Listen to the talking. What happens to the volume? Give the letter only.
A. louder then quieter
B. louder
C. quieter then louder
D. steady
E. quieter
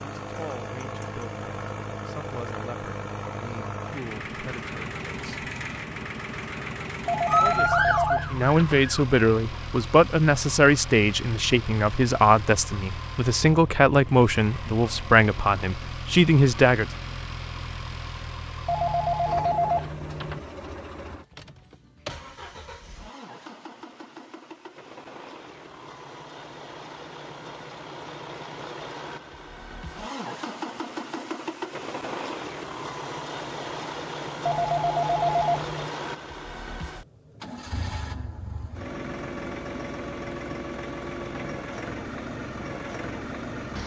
B.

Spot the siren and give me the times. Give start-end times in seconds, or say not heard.
7.2-9.1.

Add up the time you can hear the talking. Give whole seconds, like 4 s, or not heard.
15 s.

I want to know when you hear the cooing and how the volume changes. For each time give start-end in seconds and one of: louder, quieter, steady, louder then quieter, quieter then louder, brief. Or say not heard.
not heard.